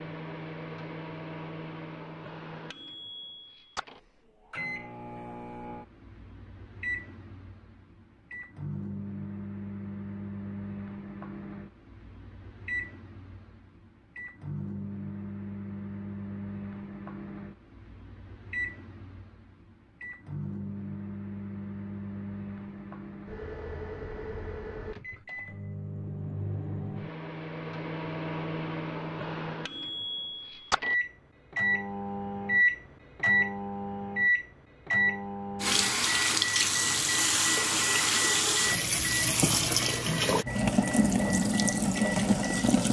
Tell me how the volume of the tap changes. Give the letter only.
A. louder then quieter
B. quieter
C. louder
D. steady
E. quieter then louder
D.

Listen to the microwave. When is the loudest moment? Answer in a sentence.
The volume of the microwave peaks at 33 seconds.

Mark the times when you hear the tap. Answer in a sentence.
The tap can be heard from 35.6 to 42.8 s.